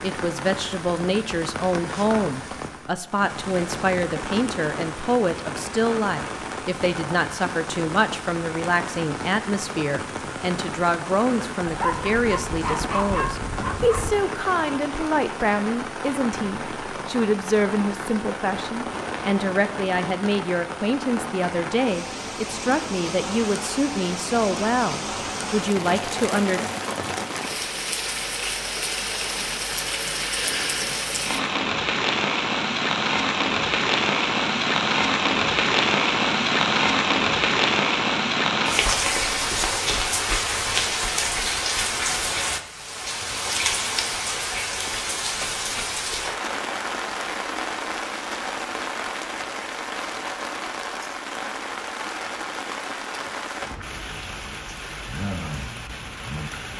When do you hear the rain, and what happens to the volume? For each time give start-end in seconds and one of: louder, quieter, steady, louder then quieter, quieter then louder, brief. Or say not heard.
0.0-56.7 louder then quieter.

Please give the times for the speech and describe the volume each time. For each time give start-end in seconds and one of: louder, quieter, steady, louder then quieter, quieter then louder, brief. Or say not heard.
0.0-26.6 steady.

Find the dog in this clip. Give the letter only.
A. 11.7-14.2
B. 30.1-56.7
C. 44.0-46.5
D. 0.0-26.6
A.